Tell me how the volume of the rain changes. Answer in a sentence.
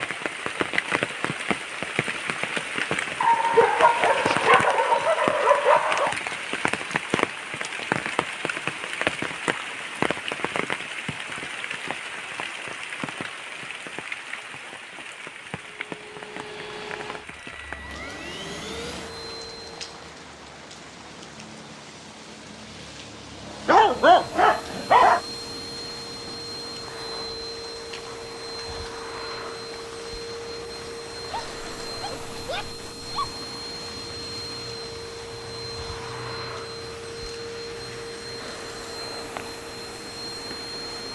The loudness of the rain goes down.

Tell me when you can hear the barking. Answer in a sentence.
You can hear the barking from 3.2 to 6.2 s, from 23.6 to 25.2 s and from 31.3 to 33.4 s.